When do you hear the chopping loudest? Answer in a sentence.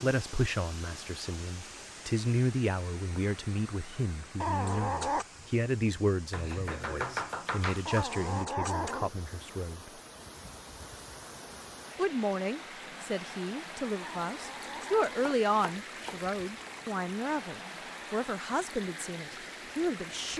The volume of the chopping peaks at 7 seconds.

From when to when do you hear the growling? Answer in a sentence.
You can hear the growling from 4.4 to 5.2 s, from 7.8 to 9.2 s and from 14.0 to 15.3 s.